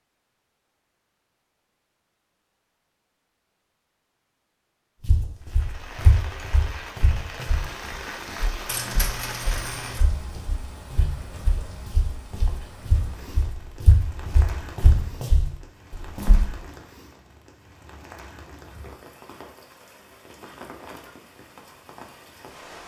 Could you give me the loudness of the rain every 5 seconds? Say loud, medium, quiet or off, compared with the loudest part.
off, loud, medium, medium, medium.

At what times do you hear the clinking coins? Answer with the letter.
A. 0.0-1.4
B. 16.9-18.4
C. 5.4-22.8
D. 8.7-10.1
D.